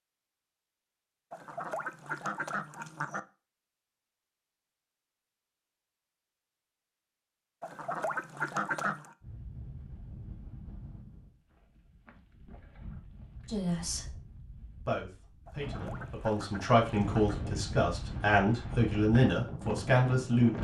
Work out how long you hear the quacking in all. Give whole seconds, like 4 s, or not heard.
5 s.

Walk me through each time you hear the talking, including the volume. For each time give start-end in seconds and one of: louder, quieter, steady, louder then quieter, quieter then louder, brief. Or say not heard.
13.4-14.2 brief
14.8-20.5 louder.